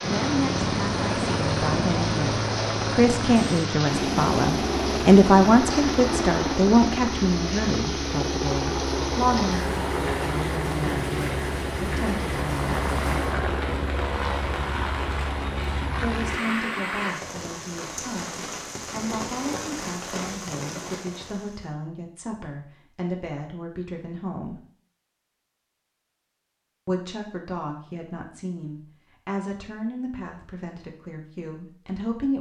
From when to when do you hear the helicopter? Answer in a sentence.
The helicopter can be heard from 0.0 to 16.4 s.